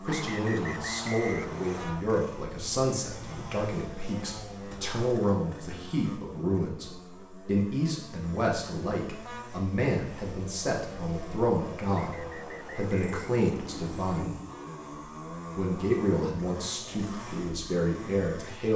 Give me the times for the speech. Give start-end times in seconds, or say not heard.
0.0-14.3, 15.6-18.7.